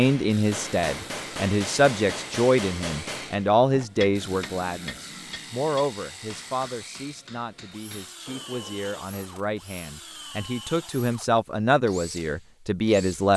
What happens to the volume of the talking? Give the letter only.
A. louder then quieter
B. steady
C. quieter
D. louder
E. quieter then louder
E.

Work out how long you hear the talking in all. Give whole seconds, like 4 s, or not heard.
13 s.